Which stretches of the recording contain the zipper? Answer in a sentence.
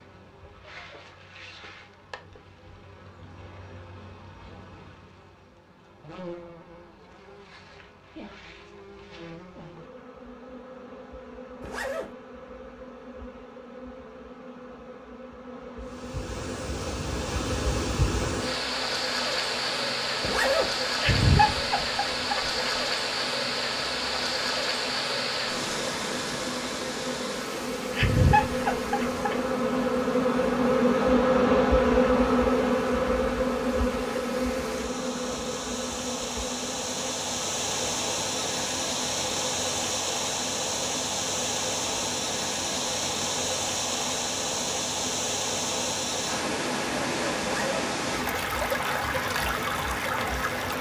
The zipper can be heard from 11.6 to 12.2 s, from 20.2 to 20.8 s and from 47.5 to 47.9 s.